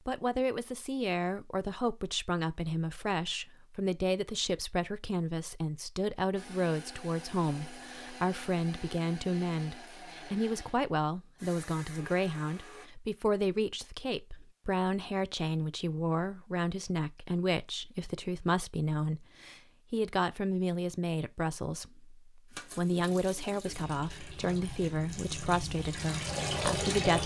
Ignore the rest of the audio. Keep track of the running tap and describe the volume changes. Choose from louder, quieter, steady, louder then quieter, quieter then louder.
louder.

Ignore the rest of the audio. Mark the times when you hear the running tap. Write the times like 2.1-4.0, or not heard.
22.5-27.2.